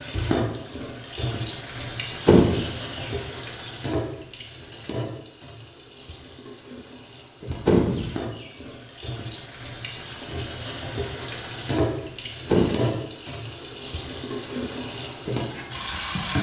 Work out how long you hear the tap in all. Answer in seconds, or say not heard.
16 s.